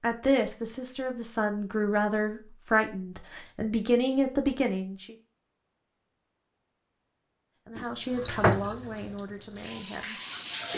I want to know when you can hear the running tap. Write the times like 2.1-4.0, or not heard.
7.8-10.7.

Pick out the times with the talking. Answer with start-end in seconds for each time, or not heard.
0.0-5.2, 7.7-10.2.